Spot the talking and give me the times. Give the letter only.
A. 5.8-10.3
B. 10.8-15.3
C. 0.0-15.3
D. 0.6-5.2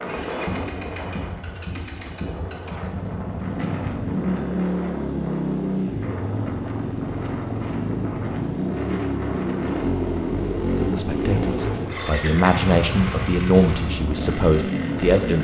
B.